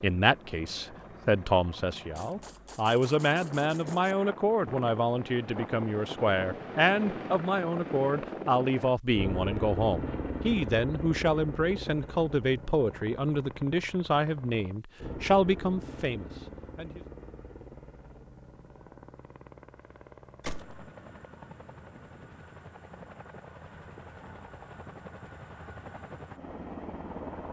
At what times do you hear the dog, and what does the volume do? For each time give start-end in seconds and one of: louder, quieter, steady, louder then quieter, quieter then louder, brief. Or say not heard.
not heard.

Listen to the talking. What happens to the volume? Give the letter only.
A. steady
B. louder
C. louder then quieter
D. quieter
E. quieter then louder
A.